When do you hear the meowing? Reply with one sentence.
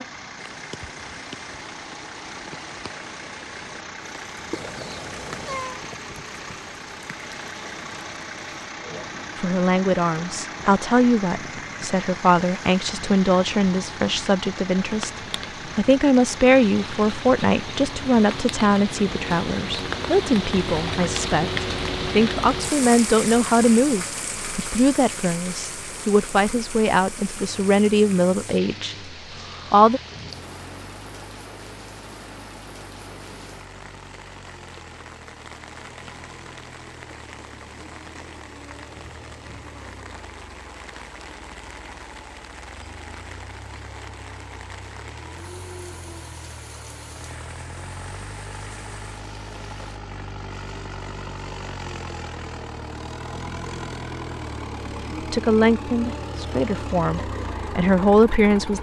You can hear the meowing from 4.5 to 5.8 s.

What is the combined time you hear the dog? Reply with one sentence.
The dog can't be heard in this clip.